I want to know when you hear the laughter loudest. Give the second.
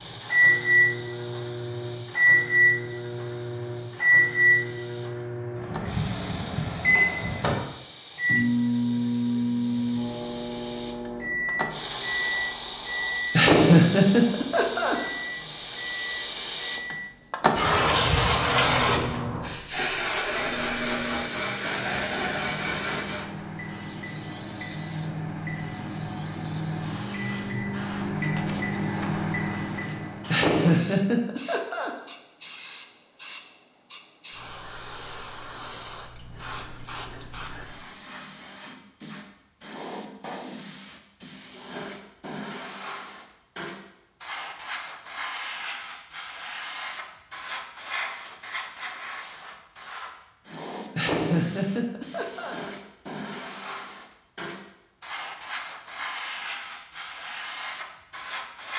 14 s.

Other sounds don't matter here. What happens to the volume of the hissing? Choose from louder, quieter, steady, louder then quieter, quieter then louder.
louder then quieter.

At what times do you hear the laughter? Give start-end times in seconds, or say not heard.
13.3-14.9, 30.3-31.9, 51.0-52.6.